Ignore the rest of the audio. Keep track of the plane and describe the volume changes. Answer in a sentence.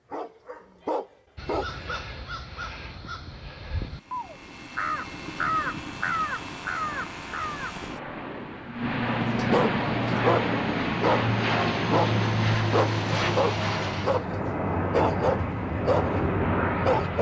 The volume of the plane goes up.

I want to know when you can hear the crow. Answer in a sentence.
You can hear the crow from 1.4 to 7.8 s.